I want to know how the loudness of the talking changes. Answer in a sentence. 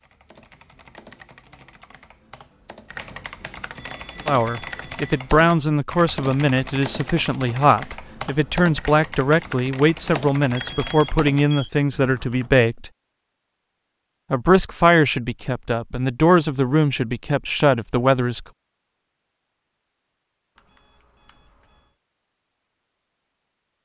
The loudness of the talking stays about the same.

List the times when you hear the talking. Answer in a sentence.
The talking can be heard from 4.2 to 12.9 s and from 14.3 to 18.4 s.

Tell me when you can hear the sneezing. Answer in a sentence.
The sneezing can't be heard in this clip.